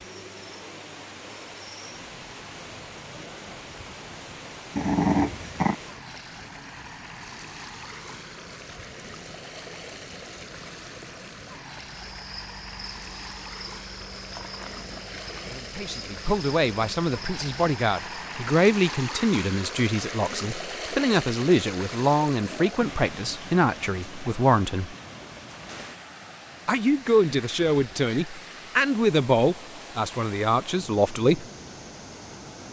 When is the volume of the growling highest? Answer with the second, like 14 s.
5 s.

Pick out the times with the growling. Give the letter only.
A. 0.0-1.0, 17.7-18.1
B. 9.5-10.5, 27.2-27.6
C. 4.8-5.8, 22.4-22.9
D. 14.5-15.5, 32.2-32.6
C.